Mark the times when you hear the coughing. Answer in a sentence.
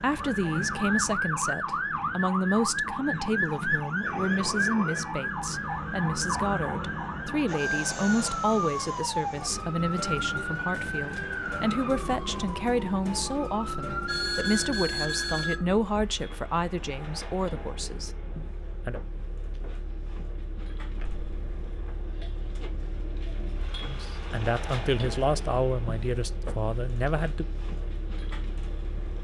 You can't hear the coughing here.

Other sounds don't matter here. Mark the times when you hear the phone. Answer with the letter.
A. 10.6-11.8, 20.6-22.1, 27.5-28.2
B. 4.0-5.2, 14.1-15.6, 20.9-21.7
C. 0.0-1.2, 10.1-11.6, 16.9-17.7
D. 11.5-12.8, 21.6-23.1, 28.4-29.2
B.